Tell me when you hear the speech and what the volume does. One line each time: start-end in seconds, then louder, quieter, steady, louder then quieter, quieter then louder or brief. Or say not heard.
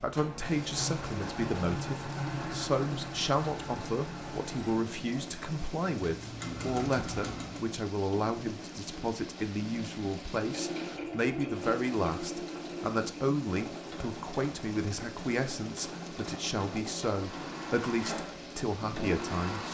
0.0-19.6 steady.